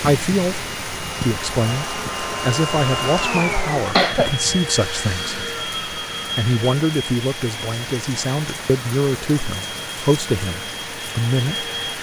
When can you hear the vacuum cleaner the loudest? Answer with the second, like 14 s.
3 s.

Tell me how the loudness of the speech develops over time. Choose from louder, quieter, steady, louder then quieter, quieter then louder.
steady.